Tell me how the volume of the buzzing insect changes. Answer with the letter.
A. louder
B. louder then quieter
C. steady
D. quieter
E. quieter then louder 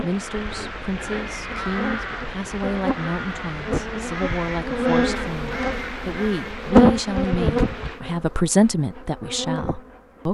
B.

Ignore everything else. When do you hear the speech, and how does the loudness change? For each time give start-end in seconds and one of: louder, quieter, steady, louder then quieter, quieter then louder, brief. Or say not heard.
0.0-10.2 louder.